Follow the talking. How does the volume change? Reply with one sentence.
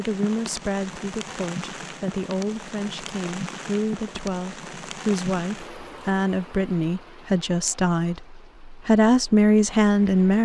The volume of the talking goes up.